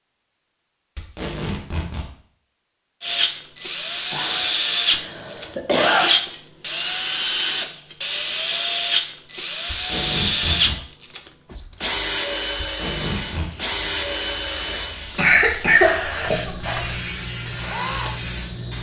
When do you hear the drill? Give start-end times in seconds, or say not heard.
3.0-18.7.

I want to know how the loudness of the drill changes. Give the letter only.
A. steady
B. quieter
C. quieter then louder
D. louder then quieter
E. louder
B.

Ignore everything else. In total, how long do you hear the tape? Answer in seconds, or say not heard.
3 s.